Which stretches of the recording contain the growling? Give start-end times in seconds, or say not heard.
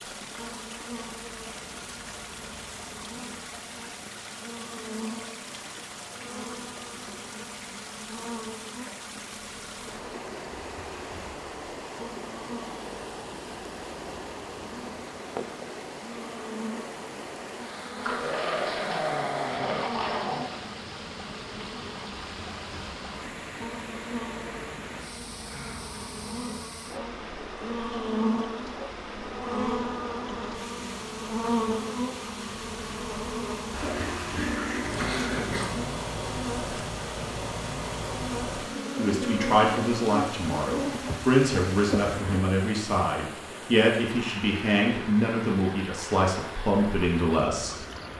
18.1-20.6, 33.8-35.9.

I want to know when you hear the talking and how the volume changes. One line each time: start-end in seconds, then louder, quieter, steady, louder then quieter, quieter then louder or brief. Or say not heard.
39.0-47.8 steady.